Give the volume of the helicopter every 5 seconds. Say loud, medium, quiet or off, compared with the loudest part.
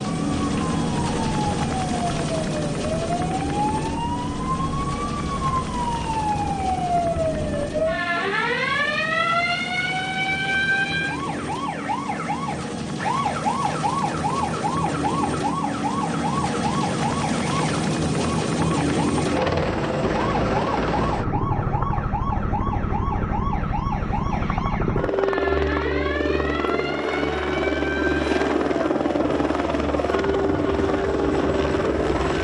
loud, medium, medium, loud, loud, loud, loud.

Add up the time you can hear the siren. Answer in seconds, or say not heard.
32 s.